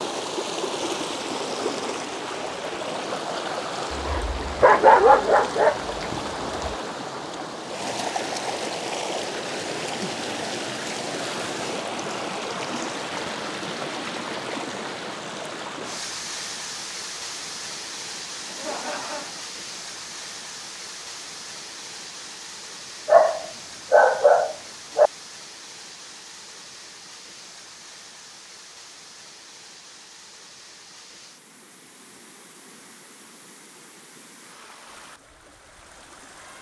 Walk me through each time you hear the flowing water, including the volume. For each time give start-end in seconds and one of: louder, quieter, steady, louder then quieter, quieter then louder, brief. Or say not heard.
0.0-36.5 quieter.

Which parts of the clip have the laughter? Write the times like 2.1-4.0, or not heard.
18.4-19.4.